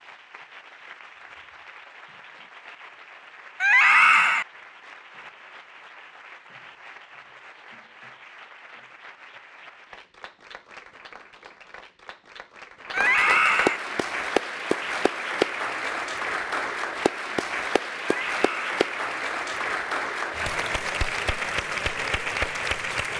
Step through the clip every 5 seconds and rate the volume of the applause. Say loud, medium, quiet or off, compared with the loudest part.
quiet, quiet, loud, loud, loud.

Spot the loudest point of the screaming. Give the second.
4 s.